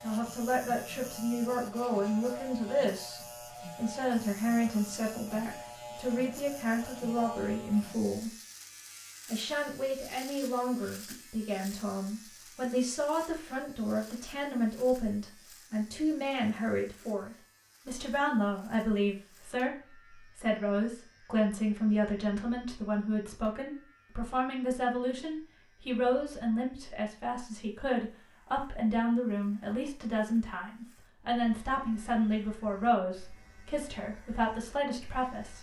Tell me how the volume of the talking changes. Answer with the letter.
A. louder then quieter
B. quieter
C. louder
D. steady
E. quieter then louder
D.